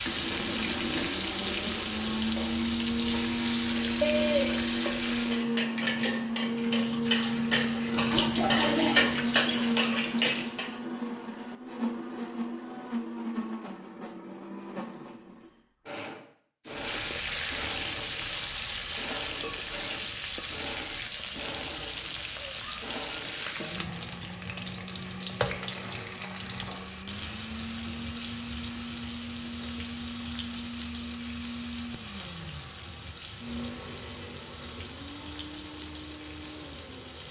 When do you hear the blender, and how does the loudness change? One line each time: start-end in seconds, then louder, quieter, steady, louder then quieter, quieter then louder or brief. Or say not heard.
0.0-37.2 quieter.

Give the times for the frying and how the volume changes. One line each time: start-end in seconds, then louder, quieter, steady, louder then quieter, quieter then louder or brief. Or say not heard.
0.0-5.5 steady
16.6-37.2 quieter.